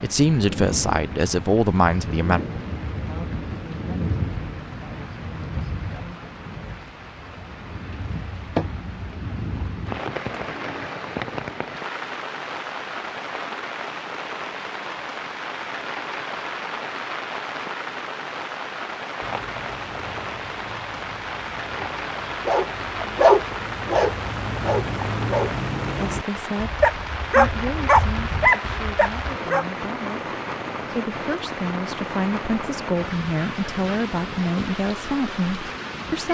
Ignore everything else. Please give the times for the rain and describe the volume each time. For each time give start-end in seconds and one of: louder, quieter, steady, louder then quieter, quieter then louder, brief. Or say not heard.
0.0-36.3 steady.